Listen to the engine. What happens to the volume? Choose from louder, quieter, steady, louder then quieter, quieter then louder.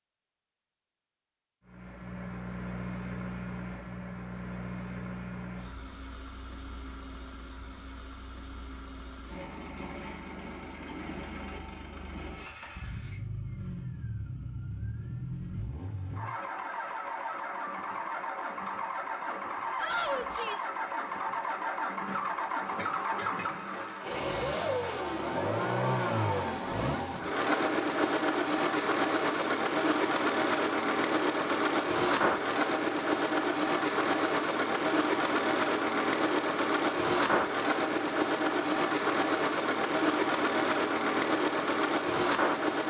louder.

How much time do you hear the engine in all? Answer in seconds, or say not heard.
41 s.